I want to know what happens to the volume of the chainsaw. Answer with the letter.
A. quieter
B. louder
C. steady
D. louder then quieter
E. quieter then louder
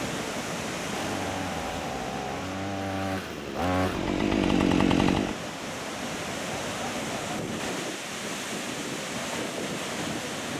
B.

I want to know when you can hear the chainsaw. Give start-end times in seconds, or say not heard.
0.0-5.4.